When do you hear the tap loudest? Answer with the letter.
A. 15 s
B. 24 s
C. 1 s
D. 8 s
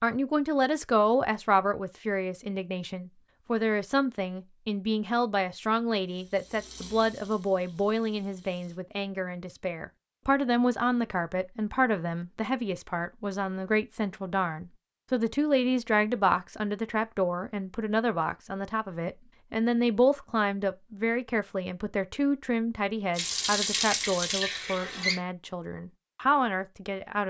B.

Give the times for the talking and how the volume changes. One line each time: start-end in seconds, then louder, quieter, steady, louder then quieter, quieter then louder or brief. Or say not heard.
0.0-27.2 steady.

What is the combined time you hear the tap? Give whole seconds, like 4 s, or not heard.
5 s.